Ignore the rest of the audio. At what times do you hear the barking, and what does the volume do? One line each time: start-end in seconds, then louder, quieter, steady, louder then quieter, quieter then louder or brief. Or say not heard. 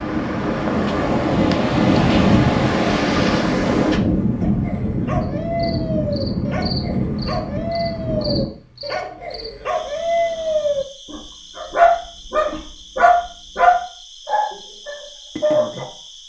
4.4-15.8 louder.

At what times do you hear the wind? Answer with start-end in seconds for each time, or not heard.
0.0-8.5.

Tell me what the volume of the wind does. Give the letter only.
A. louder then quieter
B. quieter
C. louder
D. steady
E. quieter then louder
B.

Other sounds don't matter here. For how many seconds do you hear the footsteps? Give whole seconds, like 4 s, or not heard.
not heard.